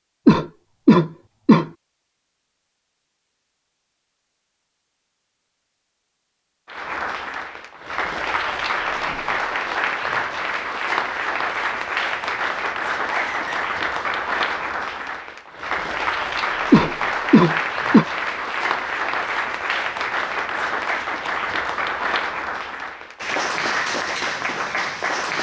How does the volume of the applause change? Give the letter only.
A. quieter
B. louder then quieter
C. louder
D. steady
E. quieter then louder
D.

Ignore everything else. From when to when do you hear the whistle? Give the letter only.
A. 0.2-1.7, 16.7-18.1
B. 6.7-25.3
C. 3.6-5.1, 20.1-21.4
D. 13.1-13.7
D.